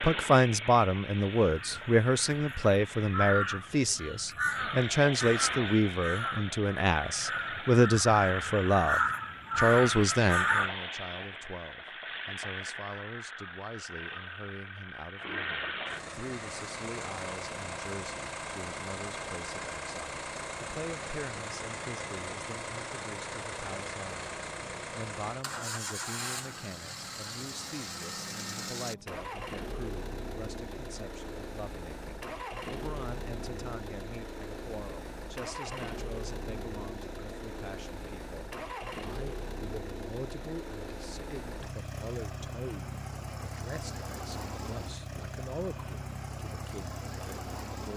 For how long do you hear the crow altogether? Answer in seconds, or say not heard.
9 s.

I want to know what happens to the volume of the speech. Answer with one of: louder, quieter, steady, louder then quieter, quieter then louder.
quieter.